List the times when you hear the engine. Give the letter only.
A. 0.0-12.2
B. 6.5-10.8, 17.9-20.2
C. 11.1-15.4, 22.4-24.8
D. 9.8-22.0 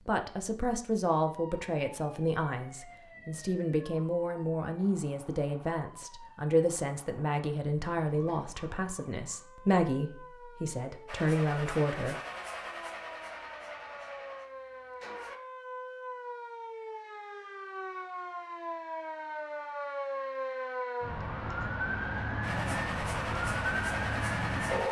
C.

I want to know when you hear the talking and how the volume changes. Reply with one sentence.
You can hear the talking from 0.0 to 12.2 s, at a steady volume.